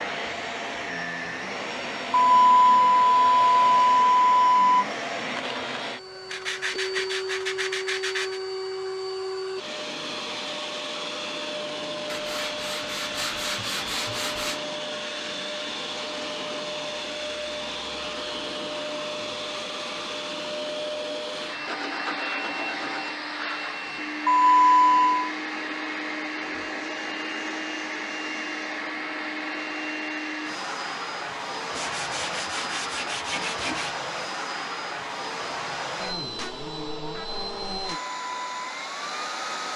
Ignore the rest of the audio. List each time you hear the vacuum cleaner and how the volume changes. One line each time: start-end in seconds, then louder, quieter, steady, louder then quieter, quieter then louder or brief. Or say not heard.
0.0-39.7 steady.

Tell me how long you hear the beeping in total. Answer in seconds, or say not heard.
4 s.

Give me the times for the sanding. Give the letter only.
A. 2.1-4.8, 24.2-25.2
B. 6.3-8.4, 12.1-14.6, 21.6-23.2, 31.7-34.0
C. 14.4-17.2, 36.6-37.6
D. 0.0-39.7
B.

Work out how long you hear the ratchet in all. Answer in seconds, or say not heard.
not heard.